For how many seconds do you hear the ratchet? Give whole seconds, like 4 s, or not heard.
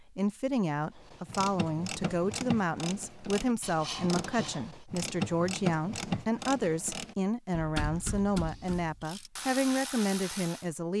10 s.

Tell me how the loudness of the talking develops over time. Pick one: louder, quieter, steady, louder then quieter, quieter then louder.
steady.